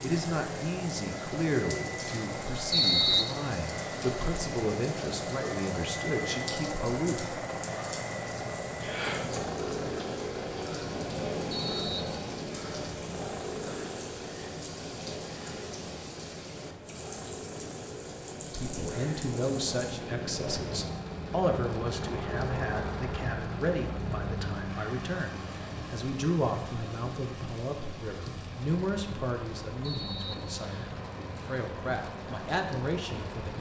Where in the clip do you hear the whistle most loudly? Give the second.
3 s.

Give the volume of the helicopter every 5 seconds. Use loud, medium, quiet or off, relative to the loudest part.
loud, loud, loud, medium, loud, medium, medium.